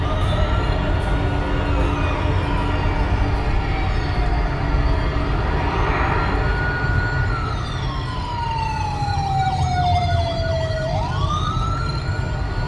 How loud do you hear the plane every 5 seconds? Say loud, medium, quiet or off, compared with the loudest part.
loud, loud, medium.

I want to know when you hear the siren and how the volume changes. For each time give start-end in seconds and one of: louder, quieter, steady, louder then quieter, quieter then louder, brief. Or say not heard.
0.0-12.6 louder.